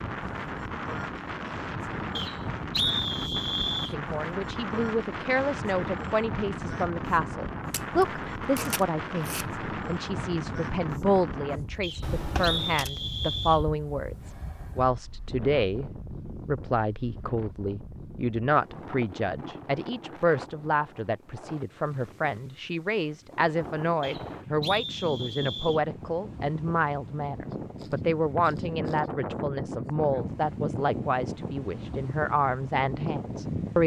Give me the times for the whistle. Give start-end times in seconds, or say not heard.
2.1-4.0, 11.8-13.7, 24.0-25.8.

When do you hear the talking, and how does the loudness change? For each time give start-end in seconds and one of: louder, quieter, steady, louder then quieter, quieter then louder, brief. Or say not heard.
3.9-33.8 steady.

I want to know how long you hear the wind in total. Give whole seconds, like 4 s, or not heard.
34 s.